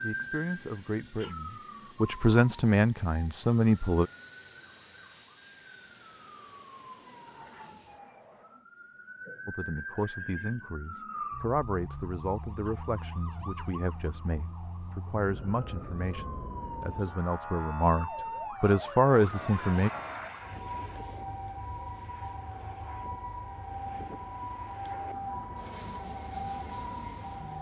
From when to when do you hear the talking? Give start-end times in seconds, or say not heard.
0.0-4.1, 9.4-19.9.